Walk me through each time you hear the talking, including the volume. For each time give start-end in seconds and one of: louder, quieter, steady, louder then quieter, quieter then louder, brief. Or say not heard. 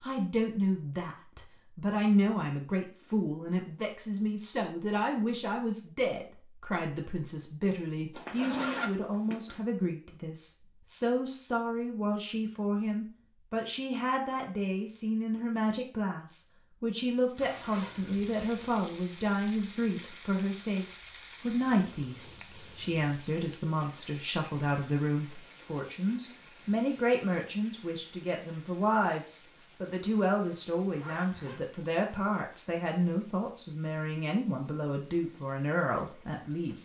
0.0-36.8 steady.